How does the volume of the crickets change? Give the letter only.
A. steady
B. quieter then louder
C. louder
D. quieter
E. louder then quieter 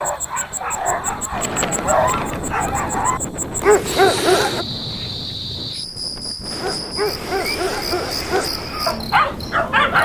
A.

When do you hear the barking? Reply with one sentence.
You can hear the barking from 0.0 to 4.7 s and from 6.5 to 10.0 s.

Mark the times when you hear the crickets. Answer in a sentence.
You can hear the crickets from 0.0 to 10.0 s.